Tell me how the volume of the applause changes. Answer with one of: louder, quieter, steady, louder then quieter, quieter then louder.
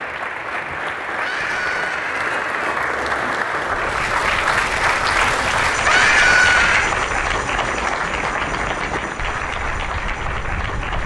louder then quieter.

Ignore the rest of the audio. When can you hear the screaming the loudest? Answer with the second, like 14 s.
6 s.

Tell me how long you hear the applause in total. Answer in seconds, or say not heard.
11 s.